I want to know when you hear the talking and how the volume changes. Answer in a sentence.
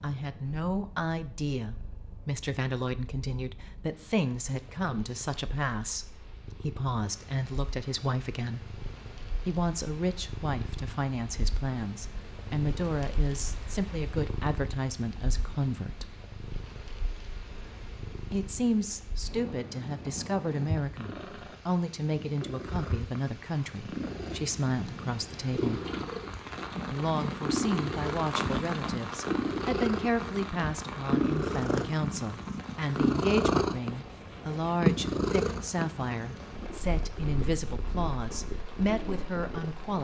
You can hear the talking from 0.0 to 8.7 s, at a steady volume; from 9.4 to 16.1 s, at a steady volume; from 18.3 to 25.8 s, at a steady volume; and from 26.9 to 39.9 s, at a steady volume.